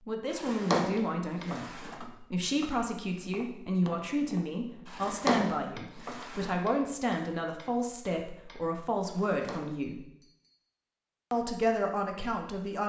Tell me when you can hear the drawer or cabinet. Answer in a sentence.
The drawer or cabinet can be heard from 0.3 to 2.0 s, from 4.8 to 6.5 s and from 9.1 to 9.8 s.